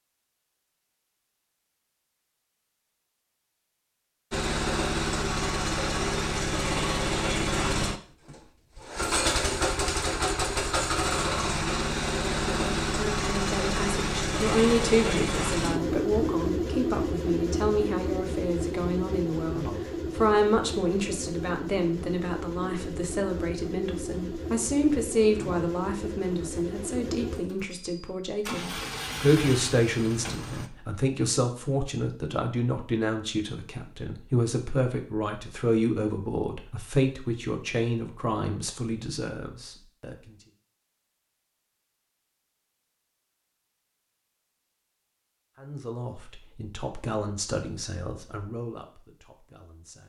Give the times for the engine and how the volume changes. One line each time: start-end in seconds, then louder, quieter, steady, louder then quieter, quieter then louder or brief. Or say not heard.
4.3-30.7 quieter.